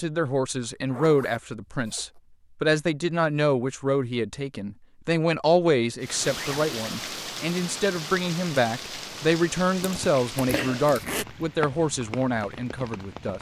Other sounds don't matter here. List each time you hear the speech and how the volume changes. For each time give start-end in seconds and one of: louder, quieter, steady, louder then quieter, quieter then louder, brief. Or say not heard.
0.0-13.3 steady.